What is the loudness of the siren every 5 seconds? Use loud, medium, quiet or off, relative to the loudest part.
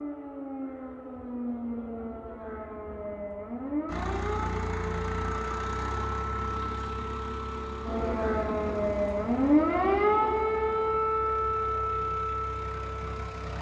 medium, loud, loud.